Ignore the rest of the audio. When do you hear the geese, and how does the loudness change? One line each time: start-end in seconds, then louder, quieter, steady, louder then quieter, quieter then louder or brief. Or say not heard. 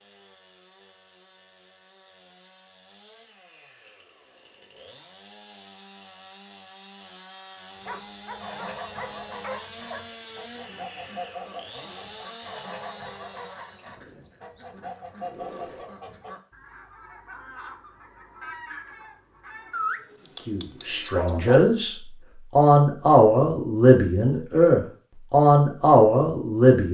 7.8-19.8 steady.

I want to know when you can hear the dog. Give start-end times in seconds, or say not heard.
7.8-10.1, 19.7-21.6.